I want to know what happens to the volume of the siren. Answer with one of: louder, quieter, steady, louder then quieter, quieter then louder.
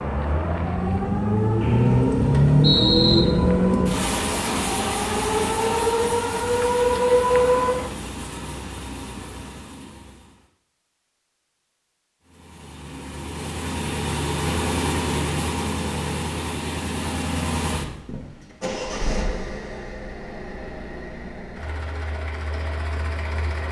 louder.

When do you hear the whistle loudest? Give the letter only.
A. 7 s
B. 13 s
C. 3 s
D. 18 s
C.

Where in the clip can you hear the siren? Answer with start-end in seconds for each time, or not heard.
0.0-8.0.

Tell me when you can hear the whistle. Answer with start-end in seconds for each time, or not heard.
1.6-3.2.